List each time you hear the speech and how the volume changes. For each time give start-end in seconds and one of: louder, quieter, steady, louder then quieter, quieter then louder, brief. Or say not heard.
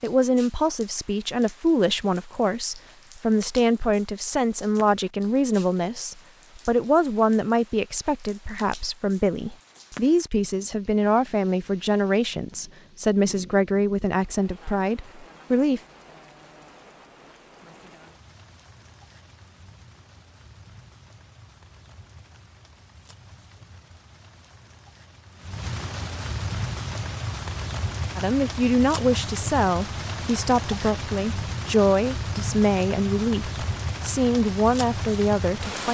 0.0-15.8 steady
28.1-35.8 steady.